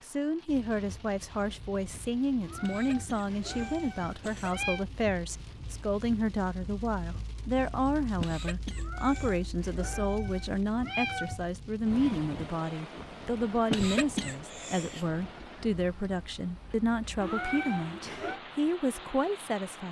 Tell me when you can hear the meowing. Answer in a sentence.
The meowing can be heard from 2.4 to 4.8 s, from 8.8 to 11.4 s and from 17.2 to 18.4 s.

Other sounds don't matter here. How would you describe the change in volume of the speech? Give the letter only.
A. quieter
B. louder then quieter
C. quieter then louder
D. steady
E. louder
D.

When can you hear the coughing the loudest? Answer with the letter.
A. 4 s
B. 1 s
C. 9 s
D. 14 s
D.